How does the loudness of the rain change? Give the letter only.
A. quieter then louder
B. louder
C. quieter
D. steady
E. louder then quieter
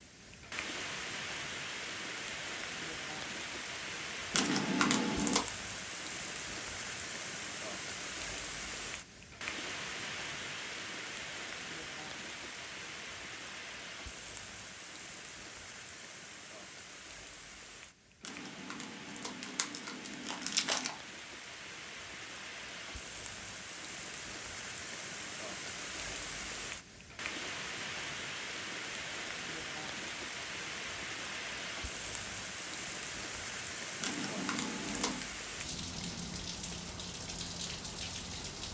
A.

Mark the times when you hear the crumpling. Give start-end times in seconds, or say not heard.
4.3-5.4, 18.2-20.9, 34.0-35.3.